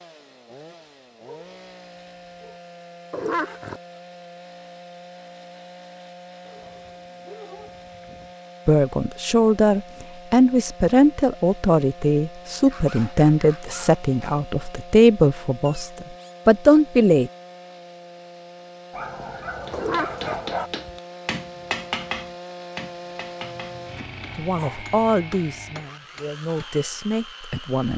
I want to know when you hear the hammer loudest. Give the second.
22 s.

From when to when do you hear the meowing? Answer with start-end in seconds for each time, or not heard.
3.1-3.8, 15.7-16.4, 19.7-20.4.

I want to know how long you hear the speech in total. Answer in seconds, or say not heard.
12 s.